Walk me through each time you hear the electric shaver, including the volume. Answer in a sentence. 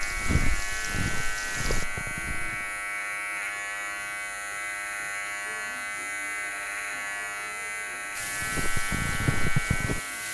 You can hear the electric shaver from 0.0 to 10.2 s, at a steady volume.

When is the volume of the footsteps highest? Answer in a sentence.
The volume of the footsteps peaks at 9 seconds.